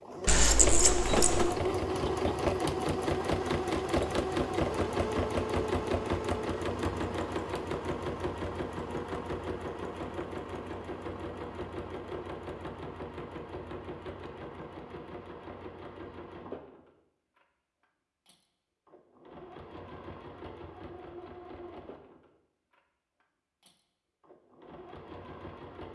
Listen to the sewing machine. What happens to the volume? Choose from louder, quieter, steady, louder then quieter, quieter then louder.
quieter.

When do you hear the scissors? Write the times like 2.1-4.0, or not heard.
0.2-1.6.